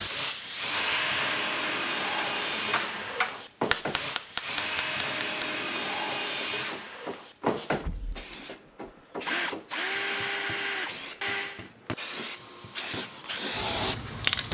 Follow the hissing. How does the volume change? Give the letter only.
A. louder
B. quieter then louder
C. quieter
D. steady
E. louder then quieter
B.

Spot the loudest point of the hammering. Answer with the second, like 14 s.
4 s.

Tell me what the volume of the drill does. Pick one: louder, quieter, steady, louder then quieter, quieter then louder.
quieter.